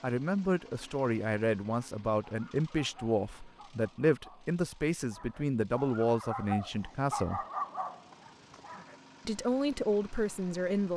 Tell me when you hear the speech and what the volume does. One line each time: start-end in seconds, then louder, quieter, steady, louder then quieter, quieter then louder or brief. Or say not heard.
0.0-7.4 steady
9.2-10.9 brief.